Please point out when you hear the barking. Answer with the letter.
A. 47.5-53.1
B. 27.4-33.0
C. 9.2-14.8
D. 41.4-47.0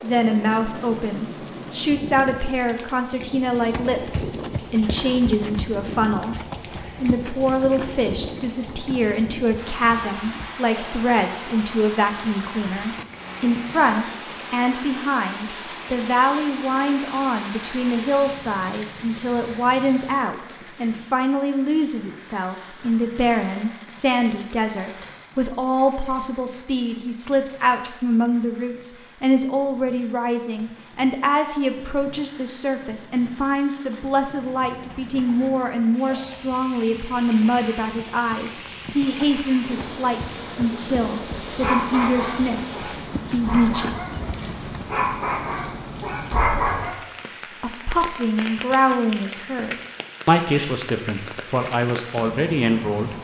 D.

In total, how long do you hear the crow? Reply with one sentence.
You can't hear the crow here.